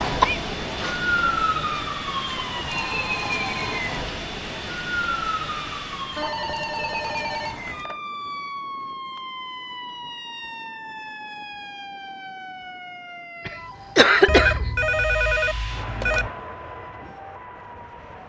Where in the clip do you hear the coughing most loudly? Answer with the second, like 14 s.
14 s.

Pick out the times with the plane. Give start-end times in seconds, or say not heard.
0.0-6.3, 14.9-18.2.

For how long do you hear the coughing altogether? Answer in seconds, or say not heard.
2 s.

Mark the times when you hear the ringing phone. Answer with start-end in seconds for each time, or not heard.
2.6-3.8, 6.2-8.0, 14.2-16.3.